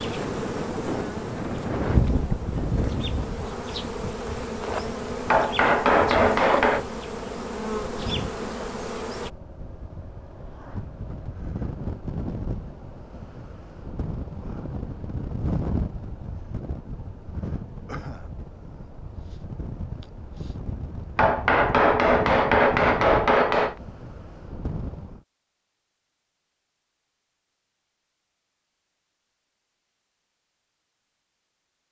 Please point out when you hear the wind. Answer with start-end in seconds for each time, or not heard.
0.0-25.2.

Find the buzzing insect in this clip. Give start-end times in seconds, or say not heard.
0.0-9.3.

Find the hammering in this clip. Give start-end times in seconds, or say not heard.
5.3-6.8, 21.1-23.8.